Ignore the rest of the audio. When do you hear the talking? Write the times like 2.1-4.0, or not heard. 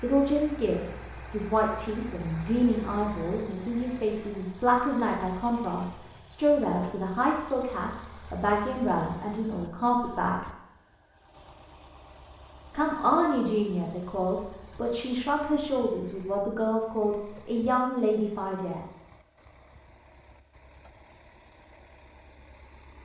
0.0-10.4, 12.7-18.8.